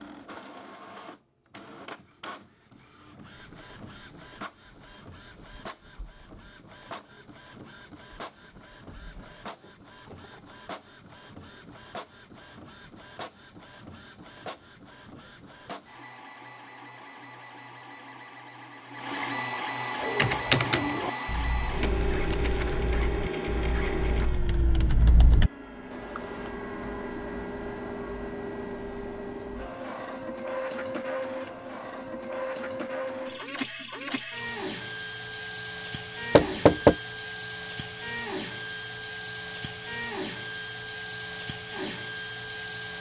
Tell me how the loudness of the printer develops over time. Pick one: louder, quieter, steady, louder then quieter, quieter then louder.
louder.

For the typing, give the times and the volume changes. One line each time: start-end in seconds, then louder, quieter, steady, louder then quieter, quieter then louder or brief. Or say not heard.
20.0-26.5 quieter then louder.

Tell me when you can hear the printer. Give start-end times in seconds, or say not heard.
0.0-42.9.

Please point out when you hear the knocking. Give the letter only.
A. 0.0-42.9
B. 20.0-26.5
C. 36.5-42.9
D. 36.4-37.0
D.